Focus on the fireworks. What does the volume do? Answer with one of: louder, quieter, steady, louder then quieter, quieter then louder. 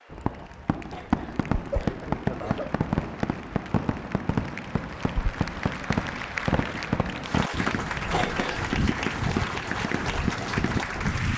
steady.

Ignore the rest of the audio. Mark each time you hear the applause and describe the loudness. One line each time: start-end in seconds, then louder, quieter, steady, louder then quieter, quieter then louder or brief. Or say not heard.
0.0-11.3 louder.